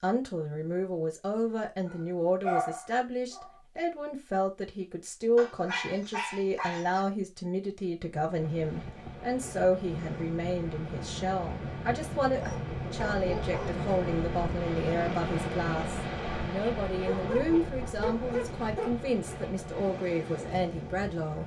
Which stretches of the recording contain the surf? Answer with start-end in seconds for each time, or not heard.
8.2-21.4.